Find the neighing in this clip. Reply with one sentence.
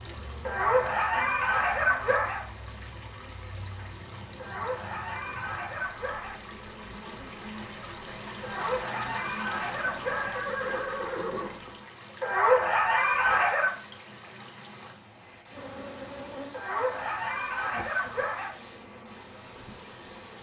The neighing can be heard from 9.5 to 11.8 s.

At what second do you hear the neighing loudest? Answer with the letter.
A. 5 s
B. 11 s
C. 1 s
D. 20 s
B.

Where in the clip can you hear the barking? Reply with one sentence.
You can hear the barking from 0.5 to 2.5 s, from 4.3 to 6.4 s, from 8.4 to 10.4 s, from 12.2 to 13.8 s and from 16.5 to 18.6 s.